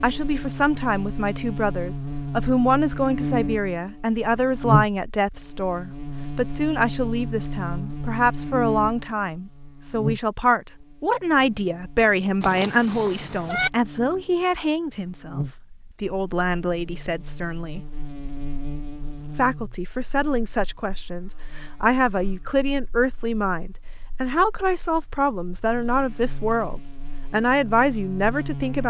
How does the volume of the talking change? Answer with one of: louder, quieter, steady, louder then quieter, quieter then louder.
steady.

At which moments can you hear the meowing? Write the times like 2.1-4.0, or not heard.
12.4-13.7.